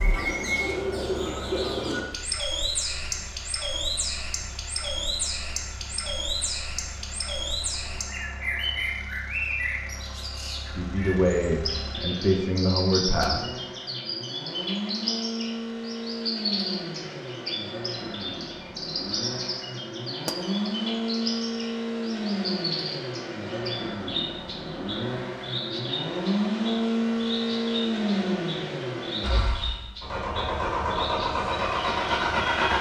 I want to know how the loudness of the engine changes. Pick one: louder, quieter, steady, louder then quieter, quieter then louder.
louder.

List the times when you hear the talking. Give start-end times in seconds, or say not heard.
10.7-13.6.